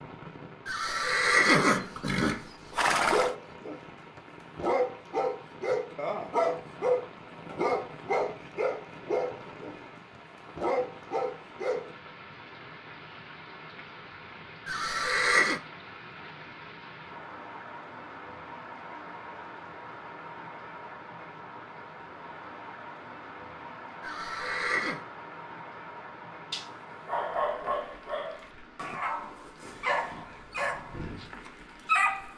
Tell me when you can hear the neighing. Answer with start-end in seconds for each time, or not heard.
0.7-3.4, 14.7-15.6, 24.0-25.0.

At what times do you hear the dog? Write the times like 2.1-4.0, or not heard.
3.0-11.9, 26.5-32.3.